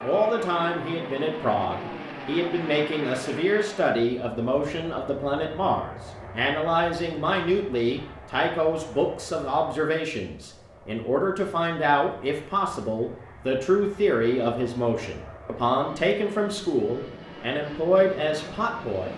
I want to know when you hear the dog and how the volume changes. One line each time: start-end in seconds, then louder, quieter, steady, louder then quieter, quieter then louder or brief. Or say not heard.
not heard.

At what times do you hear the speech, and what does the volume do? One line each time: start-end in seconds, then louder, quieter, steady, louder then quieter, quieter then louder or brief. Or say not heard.
0.0-19.1 steady.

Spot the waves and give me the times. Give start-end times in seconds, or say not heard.
not heard.